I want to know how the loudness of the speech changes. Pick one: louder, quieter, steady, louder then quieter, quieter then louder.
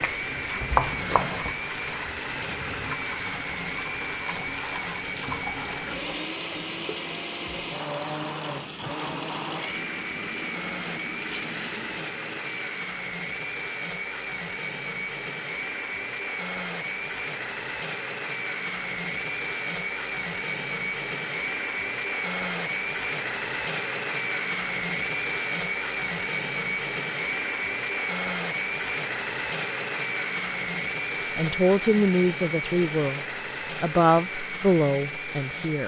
quieter then louder.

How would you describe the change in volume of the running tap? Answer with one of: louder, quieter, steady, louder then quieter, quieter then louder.
steady.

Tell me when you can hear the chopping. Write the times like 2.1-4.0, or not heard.
0.0-1.6.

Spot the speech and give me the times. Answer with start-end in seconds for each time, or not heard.
31.4-35.8.